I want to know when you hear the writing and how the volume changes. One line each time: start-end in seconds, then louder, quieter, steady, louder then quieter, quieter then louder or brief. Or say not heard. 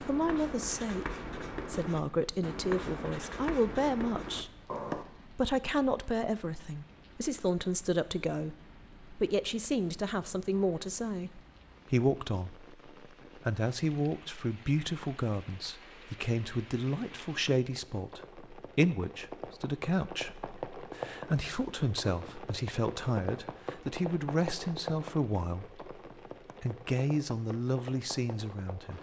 0.0-5.0 steady.